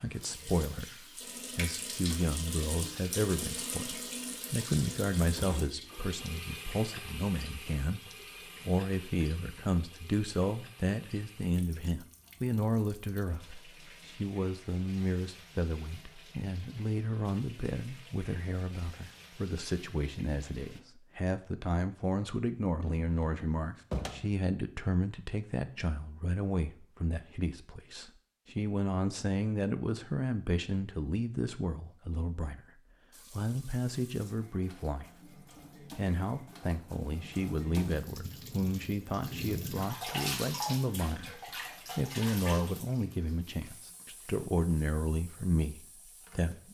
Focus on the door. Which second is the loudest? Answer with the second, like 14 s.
24 s.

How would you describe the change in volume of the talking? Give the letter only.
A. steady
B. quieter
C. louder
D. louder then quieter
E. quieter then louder
A.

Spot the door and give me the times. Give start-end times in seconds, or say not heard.
22.8-24.4.